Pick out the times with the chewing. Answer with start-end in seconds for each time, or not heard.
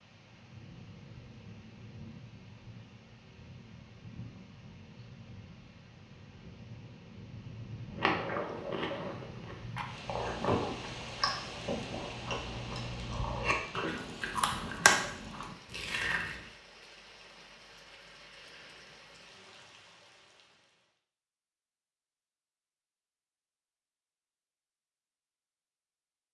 7.9-16.4.